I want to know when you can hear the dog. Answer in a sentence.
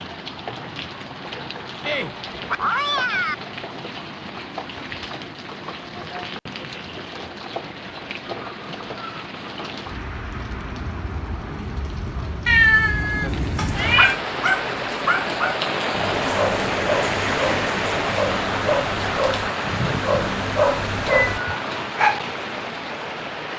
You can hear the dog from 13.2 to 22.2 s.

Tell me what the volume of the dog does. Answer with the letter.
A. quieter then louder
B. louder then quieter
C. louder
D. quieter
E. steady
A.